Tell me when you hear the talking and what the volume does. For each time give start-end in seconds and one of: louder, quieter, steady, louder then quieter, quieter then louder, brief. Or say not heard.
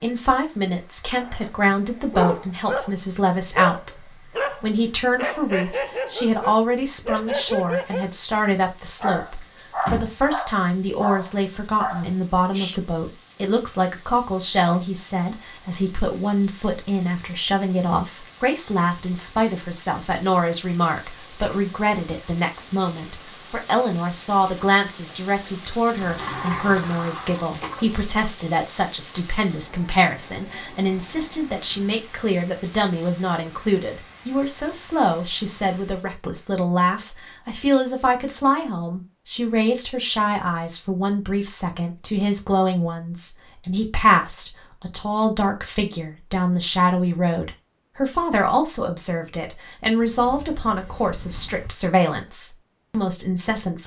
0.0-53.8 steady.